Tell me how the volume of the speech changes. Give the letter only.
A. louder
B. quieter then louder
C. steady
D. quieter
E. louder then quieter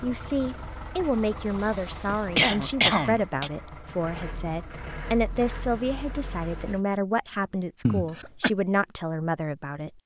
C.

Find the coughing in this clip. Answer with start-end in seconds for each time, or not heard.
1.6-3.5, 7.8-8.5.